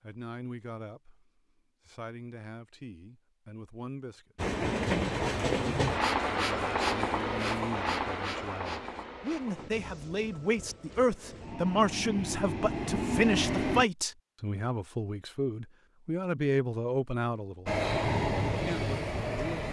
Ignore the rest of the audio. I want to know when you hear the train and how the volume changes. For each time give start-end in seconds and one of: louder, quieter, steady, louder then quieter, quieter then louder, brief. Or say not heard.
4.3-13.8 quieter then louder
17.6-19.6 brief.